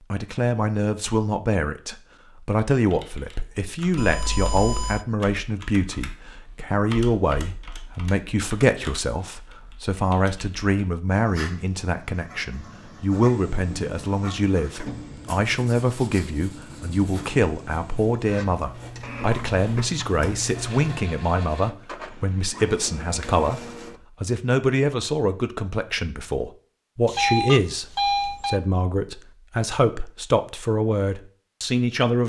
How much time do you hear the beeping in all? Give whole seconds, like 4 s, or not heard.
3 s.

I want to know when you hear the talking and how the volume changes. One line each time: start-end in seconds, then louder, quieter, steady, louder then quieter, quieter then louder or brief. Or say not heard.
0.1-23.6 steady
24.2-32.2 steady.